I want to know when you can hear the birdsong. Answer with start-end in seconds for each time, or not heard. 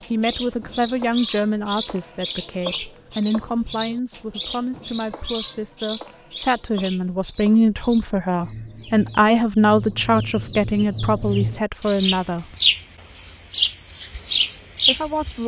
0.0-15.4.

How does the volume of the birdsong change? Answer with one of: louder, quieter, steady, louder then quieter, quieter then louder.
quieter then louder.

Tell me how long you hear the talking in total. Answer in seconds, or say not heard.
13 s.